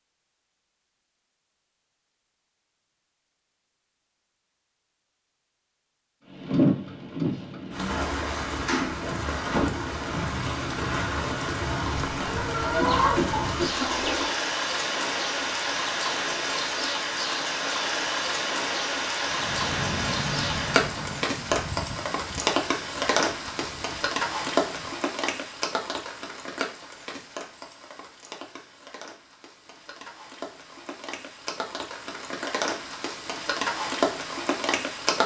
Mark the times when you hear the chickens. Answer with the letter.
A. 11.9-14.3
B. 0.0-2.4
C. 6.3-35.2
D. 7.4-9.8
A.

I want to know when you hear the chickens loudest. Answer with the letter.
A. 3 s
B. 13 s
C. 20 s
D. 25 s
B.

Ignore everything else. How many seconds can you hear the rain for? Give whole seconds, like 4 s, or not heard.
29 s.